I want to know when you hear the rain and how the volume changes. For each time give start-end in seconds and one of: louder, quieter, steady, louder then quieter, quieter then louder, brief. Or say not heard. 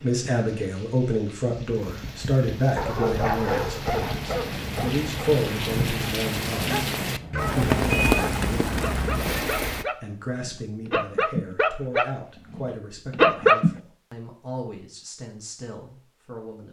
0.0-9.8 louder.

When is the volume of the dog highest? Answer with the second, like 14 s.
13 s.